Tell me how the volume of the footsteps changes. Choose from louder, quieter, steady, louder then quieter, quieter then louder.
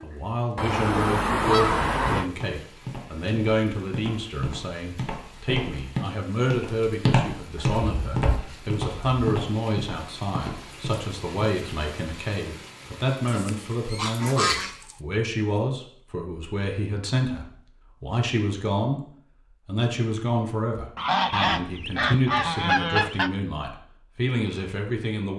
louder then quieter.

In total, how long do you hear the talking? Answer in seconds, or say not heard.
25 s.